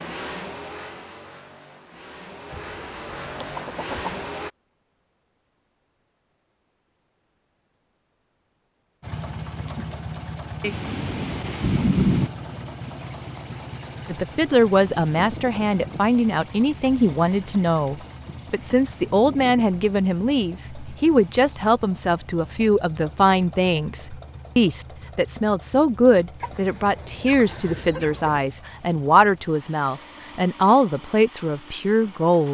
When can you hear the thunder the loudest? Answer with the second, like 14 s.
12 s.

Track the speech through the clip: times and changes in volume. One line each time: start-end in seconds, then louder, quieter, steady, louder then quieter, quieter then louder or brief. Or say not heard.
14.1-32.4 steady.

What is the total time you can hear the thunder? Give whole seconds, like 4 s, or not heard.
2 s.